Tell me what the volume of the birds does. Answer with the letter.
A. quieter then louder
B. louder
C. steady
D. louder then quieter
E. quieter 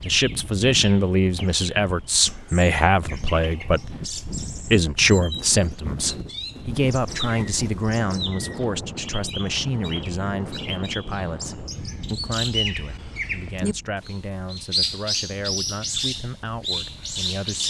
B.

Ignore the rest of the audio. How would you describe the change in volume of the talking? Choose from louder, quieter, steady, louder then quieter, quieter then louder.
quieter.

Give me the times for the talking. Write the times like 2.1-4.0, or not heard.
0.1-17.6.